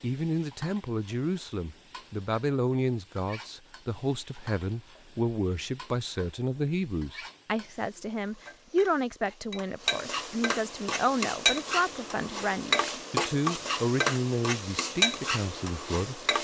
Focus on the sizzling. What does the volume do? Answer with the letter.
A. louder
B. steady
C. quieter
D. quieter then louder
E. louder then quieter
A.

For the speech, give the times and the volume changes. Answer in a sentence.
The speech can be heard from 0.0 to 16.2 s, at a steady volume.